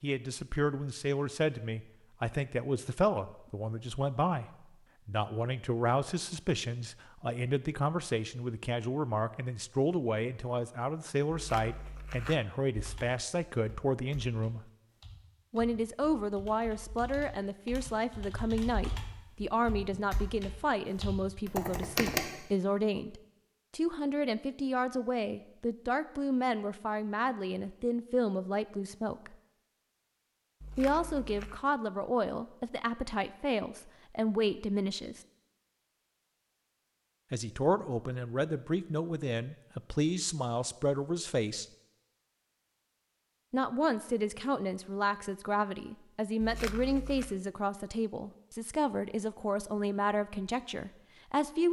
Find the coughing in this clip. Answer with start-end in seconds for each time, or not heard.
not heard.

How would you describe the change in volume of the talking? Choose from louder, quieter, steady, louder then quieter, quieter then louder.
steady.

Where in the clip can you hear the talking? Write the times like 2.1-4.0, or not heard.
0.0-14.7, 15.5-29.4, 30.8-35.2, 37.3-41.6, 43.5-51.6.